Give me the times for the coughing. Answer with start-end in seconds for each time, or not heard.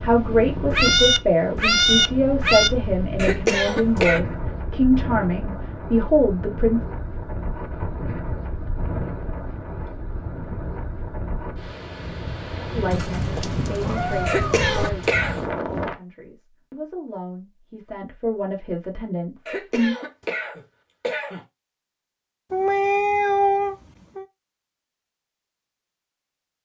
3.1-4.2, 14.2-15.4, 19.4-21.4.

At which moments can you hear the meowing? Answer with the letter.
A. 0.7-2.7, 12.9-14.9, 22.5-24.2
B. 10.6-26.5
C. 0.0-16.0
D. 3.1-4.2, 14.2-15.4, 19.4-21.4
A.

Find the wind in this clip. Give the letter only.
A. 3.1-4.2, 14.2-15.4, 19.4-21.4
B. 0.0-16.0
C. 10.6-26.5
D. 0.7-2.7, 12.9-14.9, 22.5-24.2
B.